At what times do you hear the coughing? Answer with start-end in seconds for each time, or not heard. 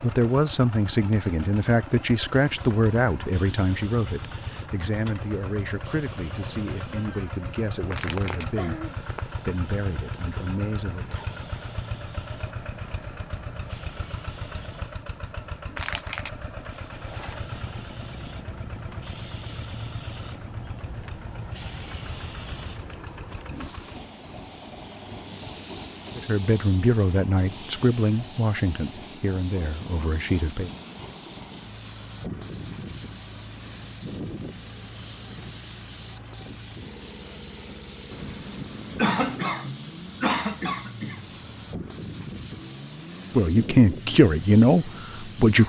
8.2-9.2, 39.0-41.2.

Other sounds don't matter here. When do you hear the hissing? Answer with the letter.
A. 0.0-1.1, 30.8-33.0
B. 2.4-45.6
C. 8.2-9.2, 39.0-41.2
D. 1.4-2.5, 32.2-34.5
B.